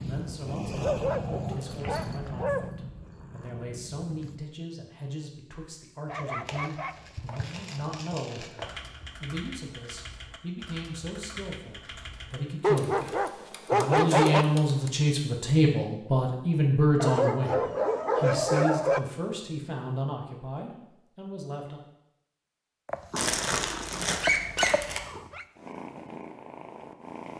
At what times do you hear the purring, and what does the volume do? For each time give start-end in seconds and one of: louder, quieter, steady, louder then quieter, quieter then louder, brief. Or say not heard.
0.0-4.4 quieter
22.9-27.3 louder then quieter.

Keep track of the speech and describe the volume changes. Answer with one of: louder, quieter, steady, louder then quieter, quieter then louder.
louder then quieter.